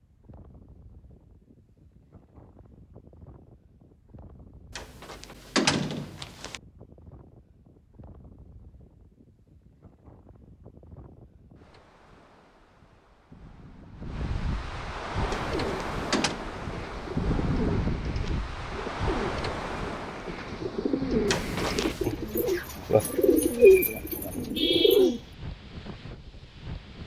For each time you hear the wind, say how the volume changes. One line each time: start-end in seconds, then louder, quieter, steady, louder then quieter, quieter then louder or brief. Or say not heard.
0.0-27.0 louder then quieter.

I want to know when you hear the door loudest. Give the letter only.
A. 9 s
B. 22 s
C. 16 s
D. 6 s
D.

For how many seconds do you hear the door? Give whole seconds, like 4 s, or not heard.
4 s.